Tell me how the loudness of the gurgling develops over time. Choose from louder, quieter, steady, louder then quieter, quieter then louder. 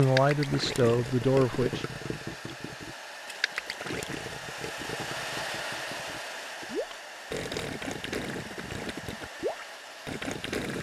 quieter then louder.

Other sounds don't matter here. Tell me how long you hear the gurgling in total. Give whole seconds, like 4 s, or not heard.
11 s.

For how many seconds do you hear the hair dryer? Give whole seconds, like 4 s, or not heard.
11 s.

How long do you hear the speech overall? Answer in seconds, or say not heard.
2 s.